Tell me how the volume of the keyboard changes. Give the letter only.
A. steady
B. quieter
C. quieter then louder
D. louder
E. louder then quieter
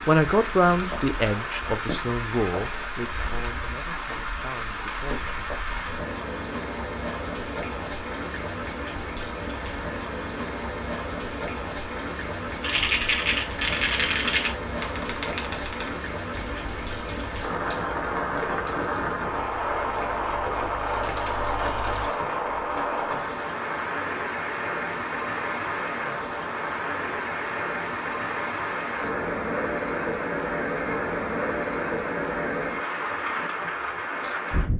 C.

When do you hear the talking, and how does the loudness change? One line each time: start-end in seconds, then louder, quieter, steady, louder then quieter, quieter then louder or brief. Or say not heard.
0.1-5.3 quieter.